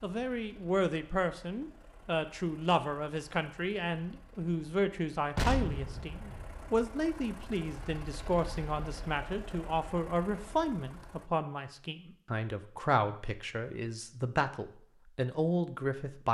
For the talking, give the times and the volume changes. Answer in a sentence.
You can hear the talking from 0.0 to 16.2 s, at a steady volume.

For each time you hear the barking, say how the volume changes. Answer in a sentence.
You can't hear the barking here.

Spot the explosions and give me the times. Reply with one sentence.
You can hear the explosions from 5.3 to 6.8 s.